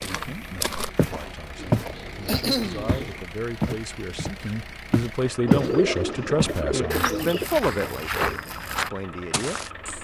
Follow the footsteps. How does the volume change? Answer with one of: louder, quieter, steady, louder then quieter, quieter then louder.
louder then quieter.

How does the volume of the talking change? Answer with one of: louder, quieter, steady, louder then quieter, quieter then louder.
louder.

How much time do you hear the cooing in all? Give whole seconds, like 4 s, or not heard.
4 s.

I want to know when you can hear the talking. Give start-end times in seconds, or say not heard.
0.0-9.7.